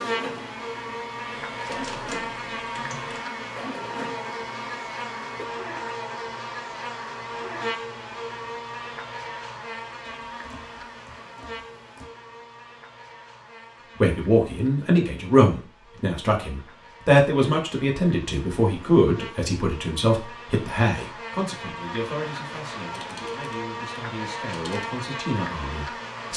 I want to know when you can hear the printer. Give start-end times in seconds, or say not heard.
0.0-5.5.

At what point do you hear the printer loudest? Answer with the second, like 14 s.
2 s.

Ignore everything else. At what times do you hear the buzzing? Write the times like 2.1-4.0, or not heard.
0.0-26.3.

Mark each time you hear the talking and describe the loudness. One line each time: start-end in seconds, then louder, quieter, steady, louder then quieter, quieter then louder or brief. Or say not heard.
13.9-26.3 quieter.